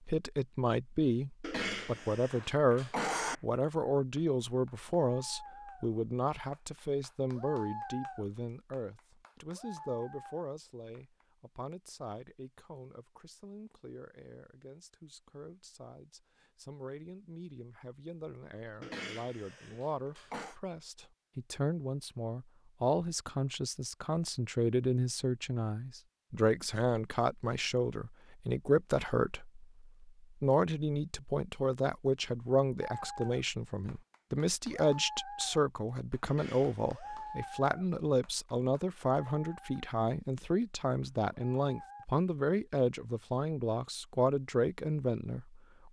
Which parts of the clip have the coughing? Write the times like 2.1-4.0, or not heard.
1.4-3.4, 18.8-20.6, 36.2-37.4.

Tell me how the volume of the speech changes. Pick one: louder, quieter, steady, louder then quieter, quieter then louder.
quieter then louder.